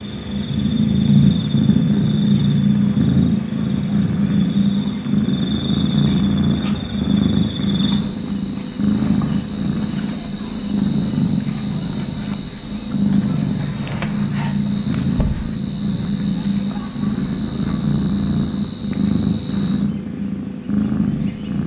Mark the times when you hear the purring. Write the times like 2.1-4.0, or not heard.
0.0-21.6.